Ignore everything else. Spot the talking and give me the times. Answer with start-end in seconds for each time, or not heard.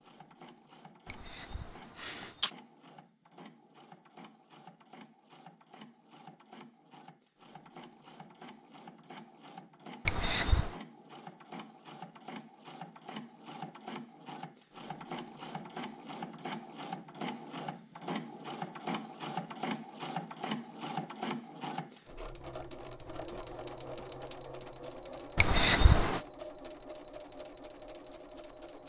not heard.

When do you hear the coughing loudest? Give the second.
26 s.